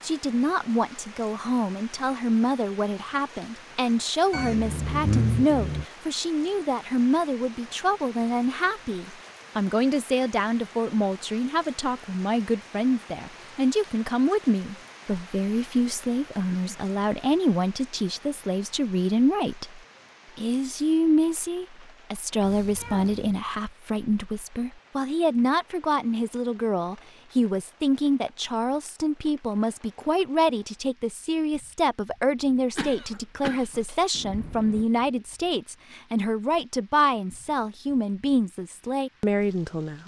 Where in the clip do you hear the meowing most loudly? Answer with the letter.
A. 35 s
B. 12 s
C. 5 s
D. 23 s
C.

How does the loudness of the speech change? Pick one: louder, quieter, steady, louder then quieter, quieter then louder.
steady.